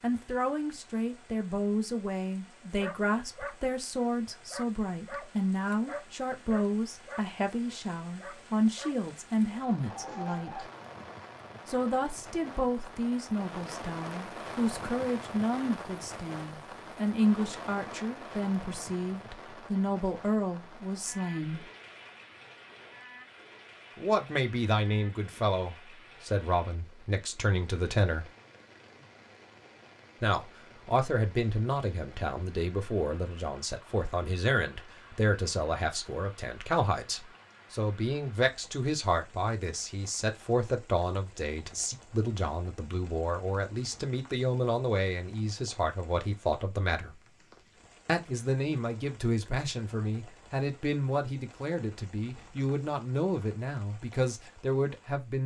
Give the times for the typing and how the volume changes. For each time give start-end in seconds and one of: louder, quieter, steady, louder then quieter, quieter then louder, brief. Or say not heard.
not heard.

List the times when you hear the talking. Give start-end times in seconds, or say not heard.
0.0-10.7, 11.7-21.6, 23.9-28.3, 30.2-47.1, 48.0-55.4.